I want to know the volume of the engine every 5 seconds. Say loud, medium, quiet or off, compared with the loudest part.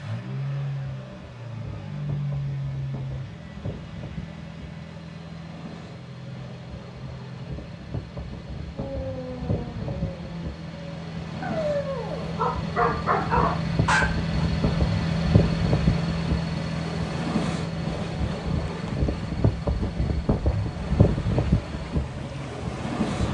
loud, medium, loud, loud, medium.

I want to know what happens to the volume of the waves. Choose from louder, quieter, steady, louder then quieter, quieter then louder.
louder.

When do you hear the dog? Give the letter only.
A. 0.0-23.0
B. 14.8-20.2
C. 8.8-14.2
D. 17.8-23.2
C.